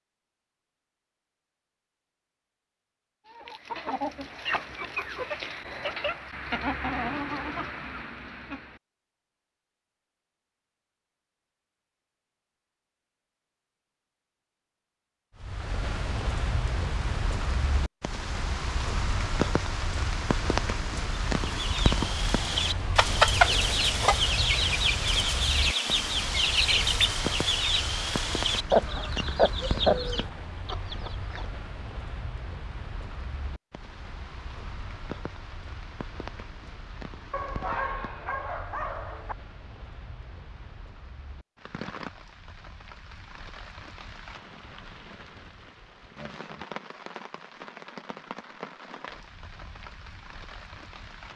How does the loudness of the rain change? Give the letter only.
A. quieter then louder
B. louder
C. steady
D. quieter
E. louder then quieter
D.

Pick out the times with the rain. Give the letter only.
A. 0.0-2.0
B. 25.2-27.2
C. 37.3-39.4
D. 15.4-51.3
D.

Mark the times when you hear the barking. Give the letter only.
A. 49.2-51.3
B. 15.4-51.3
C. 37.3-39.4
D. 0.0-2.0
C.